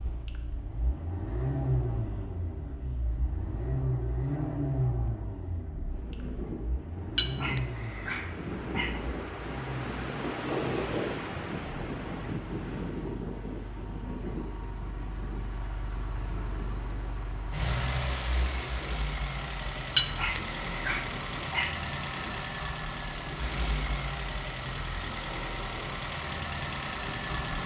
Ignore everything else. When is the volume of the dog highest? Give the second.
20 s.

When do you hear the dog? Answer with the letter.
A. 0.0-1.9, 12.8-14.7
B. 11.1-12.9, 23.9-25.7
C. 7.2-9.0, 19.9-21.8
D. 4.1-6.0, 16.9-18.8
C.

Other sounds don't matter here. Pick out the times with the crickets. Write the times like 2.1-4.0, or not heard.
not heard.